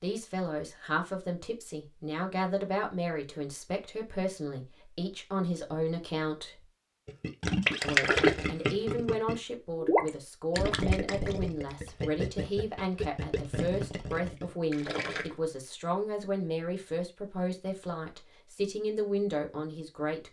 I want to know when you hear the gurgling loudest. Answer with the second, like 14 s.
8 s.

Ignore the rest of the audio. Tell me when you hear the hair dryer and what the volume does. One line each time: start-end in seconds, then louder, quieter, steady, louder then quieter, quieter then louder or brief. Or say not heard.
not heard.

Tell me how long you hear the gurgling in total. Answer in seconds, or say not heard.
8 s.